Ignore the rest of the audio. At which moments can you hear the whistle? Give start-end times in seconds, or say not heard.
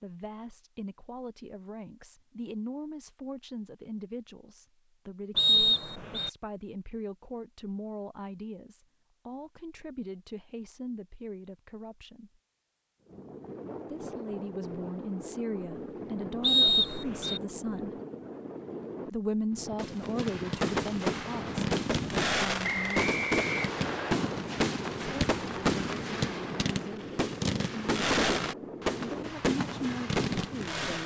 5.3-6.3, 16.4-17.4, 22.6-24.1.